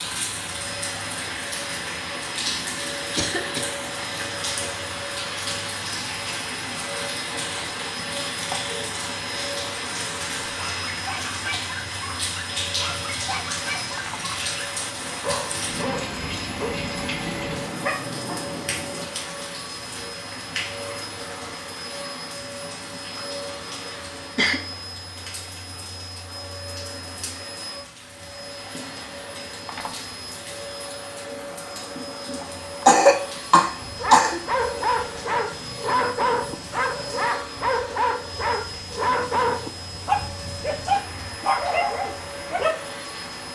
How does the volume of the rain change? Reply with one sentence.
The loudness of the rain goes down.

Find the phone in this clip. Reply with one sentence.
You can hear the phone from 13.8 to 14.3 s and from 29.6 to 30.1 s.